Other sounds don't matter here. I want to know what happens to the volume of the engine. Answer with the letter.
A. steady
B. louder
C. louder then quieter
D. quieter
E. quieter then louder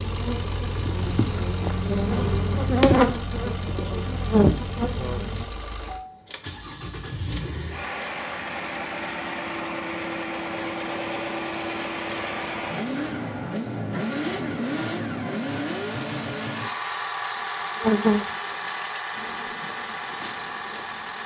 B.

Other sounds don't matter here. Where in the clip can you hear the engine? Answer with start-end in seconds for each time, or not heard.
0.0-21.2.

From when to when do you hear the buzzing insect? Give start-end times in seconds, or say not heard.
0.0-5.5, 17.4-21.2.